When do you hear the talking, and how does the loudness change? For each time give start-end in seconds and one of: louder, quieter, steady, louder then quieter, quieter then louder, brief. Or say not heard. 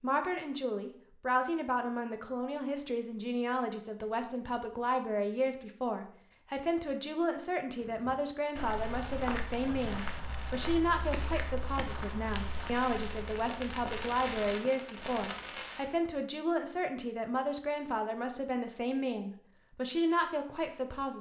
0.0-21.1 steady.